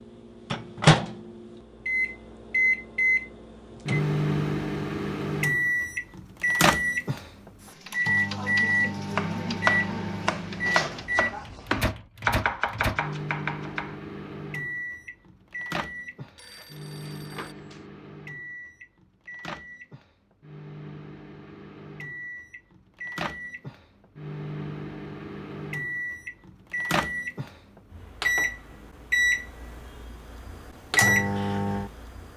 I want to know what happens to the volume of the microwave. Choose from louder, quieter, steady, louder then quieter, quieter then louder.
quieter then louder.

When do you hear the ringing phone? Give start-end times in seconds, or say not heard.
16.4-17.9.